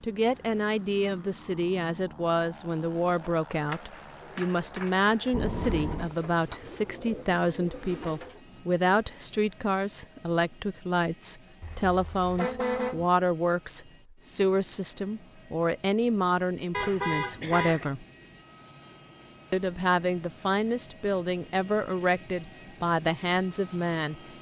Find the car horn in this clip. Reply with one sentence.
The car horn can be heard from 5.3 to 6.1 s, from 11.6 to 13.1 s and from 16.7 to 17.9 s.